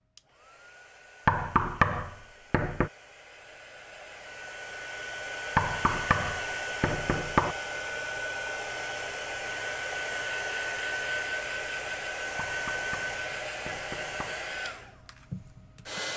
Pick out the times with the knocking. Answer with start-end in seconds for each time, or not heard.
1.2-2.9, 5.5-7.5, 12.3-14.3.